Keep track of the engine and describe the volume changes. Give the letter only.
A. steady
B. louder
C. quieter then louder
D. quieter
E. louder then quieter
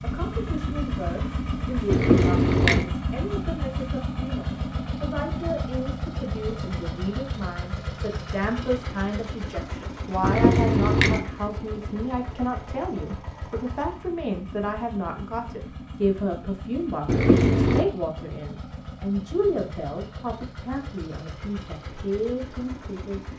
D.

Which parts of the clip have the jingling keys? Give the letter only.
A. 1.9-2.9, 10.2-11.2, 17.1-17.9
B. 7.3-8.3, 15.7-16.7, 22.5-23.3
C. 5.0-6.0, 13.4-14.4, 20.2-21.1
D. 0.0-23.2
A.